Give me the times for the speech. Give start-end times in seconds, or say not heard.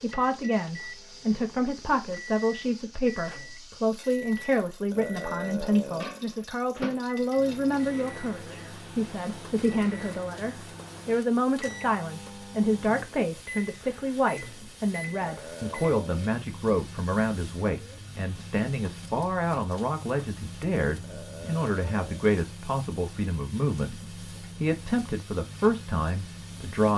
0.0-26.9.